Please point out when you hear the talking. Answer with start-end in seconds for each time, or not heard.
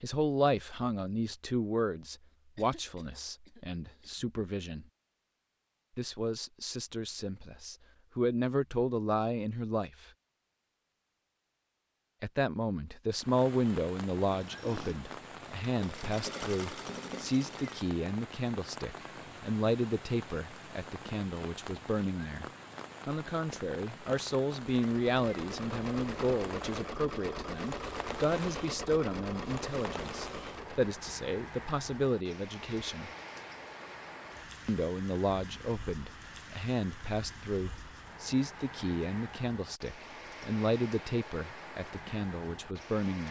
0.0-4.8, 6.0-10.1, 12.2-22.4, 23.1-33.1, 34.6-43.2.